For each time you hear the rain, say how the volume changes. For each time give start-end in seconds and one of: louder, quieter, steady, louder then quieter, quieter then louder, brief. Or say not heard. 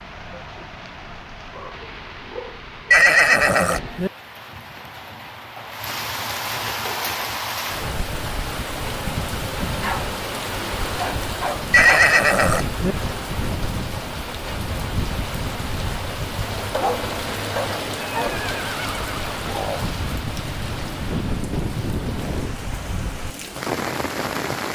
0.0-24.7 louder.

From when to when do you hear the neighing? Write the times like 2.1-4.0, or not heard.
2.9-4.1, 11.7-12.9, 18.2-19.9.